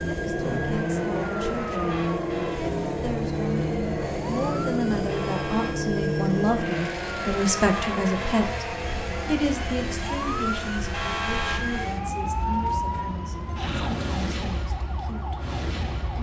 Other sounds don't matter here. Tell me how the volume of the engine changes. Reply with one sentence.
The loudness of the engine goes down.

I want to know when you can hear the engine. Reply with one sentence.
You can hear the engine from 0.0 to 16.1 s.